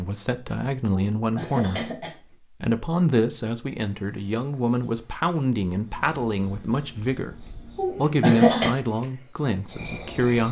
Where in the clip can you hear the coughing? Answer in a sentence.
You can hear the coughing from 1.1 to 2.2 s and from 7.8 to 8.8 s.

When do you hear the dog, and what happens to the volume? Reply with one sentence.
You can't hear the dog here.